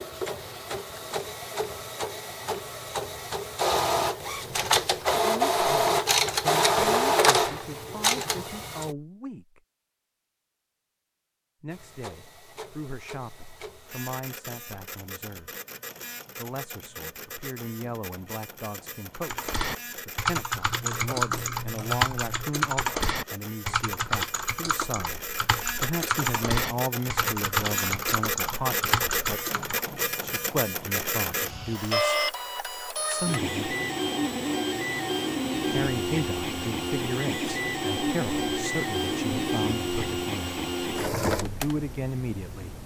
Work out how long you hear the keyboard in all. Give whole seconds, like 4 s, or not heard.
11 s.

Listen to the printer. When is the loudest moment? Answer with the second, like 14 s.
7 s.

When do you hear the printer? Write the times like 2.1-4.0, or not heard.
0.0-8.9, 11.7-42.8.